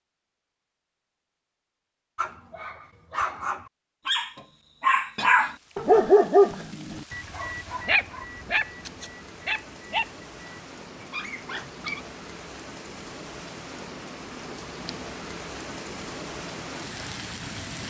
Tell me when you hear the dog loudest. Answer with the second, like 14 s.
6 s.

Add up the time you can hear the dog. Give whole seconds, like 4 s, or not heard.
10 s.